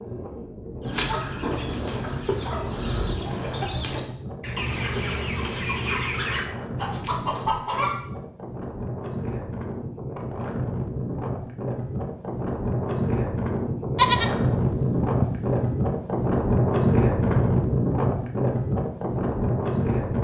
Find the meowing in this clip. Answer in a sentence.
You can't hear the meowing here.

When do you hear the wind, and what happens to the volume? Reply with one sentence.
You can hear the wind from 0.0 to 20.1 s, getting louder.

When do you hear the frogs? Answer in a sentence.
The frogs can't be heard in this clip.